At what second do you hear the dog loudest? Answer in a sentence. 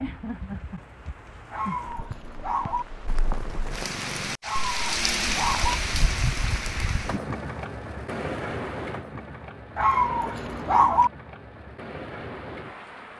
The loudest moment of the dog is at 11 seconds.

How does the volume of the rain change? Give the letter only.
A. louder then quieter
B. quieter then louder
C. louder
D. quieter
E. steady
A.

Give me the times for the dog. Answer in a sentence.
You can hear the dog from 1.5 to 2.9 s, from 4.4 to 5.8 s and from 9.8 to 11.1 s.